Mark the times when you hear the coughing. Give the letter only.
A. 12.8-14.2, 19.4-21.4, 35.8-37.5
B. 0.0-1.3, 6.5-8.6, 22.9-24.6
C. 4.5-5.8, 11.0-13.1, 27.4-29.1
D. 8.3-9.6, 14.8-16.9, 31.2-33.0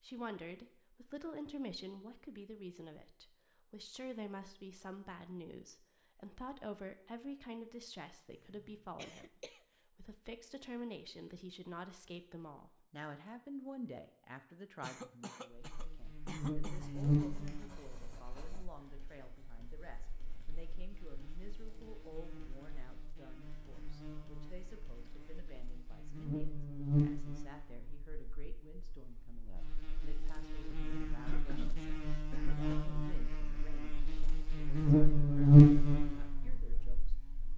D.